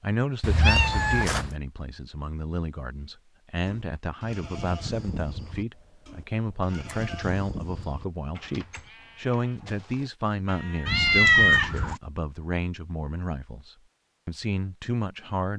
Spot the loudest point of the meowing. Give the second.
11 s.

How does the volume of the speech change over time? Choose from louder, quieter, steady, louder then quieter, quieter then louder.
steady.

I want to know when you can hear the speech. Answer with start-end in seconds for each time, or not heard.
0.0-15.5.